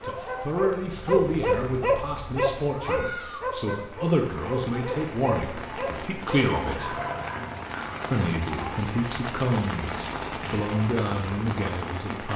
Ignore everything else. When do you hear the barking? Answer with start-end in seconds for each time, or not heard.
0.0-8.1.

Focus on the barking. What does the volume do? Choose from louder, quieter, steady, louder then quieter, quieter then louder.
quieter.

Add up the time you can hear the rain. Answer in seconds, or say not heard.
12 s.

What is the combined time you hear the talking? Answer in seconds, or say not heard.
11 s.